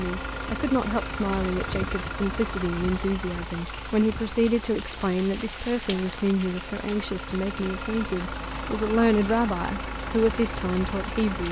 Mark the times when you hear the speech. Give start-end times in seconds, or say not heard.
0.0-11.4.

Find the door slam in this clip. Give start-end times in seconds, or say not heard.
not heard.